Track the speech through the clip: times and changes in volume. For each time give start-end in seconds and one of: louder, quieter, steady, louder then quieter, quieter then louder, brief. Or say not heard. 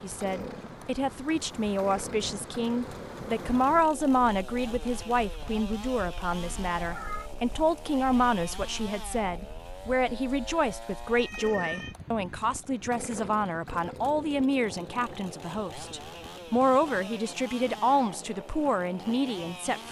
0.0-19.8 steady.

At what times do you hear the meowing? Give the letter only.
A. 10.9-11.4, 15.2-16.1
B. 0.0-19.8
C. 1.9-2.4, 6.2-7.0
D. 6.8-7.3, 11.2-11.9
D.